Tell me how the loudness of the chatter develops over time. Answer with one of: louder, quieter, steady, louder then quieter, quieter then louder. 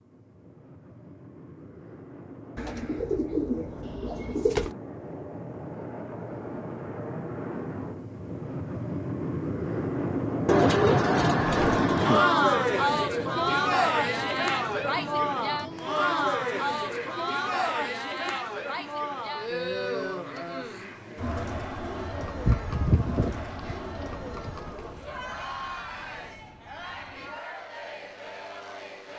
quieter.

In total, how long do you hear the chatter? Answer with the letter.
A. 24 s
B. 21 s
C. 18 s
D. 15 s
C.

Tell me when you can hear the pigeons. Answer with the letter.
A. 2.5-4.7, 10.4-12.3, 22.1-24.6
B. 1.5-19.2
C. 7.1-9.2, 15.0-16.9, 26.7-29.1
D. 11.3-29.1
A.